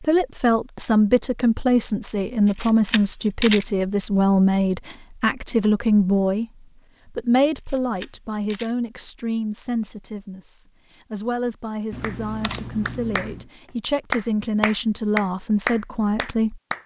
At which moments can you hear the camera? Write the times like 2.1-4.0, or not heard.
2.5-3.6, 7.5-8.8, 11.9-13.4.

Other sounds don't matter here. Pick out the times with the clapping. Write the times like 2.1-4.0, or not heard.
12.0-13.3, 14.1-16.8.